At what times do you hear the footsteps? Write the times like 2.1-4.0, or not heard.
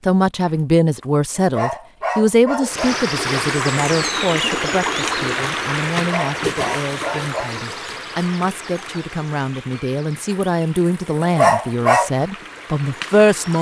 not heard.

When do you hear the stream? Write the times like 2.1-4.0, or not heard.
2.6-13.5.